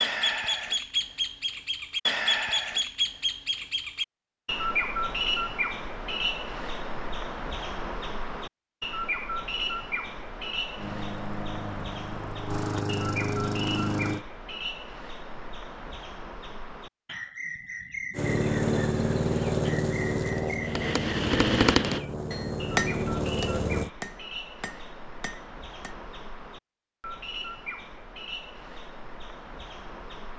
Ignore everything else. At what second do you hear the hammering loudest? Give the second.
22 s.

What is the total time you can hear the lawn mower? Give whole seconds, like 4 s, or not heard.
9 s.